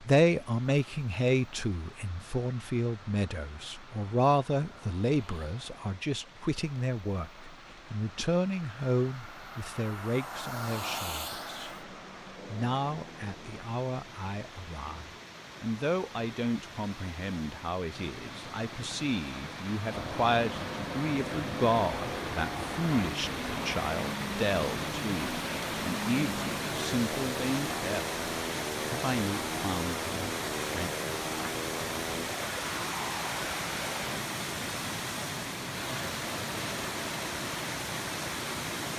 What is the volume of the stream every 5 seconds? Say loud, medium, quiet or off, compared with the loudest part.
quiet, quiet, quiet, medium, loud, loud, loud, loud.